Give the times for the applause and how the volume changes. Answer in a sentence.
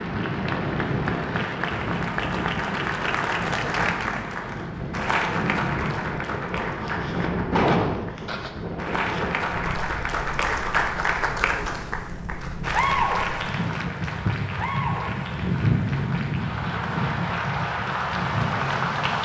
The applause can be heard from 0.0 to 19.2 s, at a steady volume.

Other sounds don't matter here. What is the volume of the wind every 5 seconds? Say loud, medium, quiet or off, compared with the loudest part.
loud, loud, medium, loud.